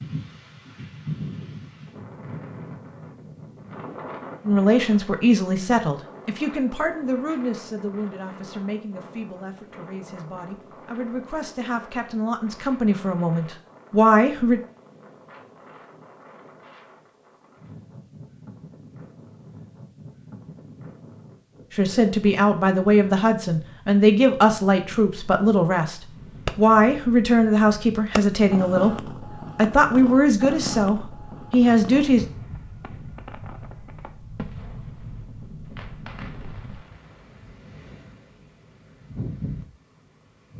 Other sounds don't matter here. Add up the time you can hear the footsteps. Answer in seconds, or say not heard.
not heard.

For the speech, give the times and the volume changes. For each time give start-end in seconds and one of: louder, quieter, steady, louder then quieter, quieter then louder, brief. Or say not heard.
4.5-14.6 quieter then louder
21.7-32.2 steady.